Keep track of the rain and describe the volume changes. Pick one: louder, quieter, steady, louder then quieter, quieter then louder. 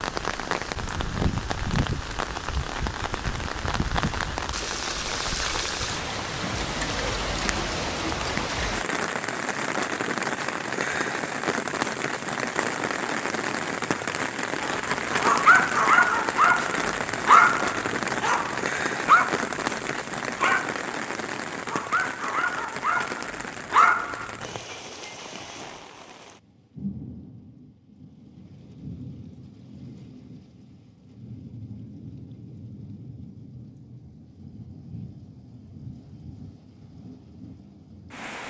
quieter.